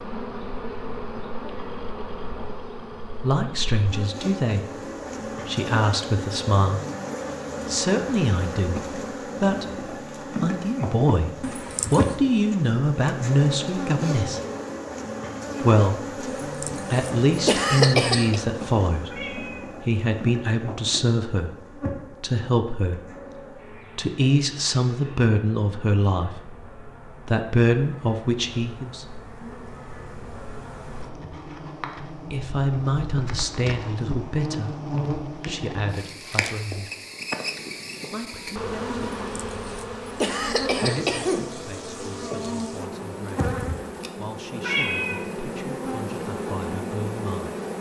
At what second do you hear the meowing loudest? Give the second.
45 s.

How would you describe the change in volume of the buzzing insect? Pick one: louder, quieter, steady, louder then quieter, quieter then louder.
quieter then louder.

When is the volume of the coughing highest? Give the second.
18 s.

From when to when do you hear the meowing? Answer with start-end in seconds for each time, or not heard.
19.1-19.7, 44.6-45.2.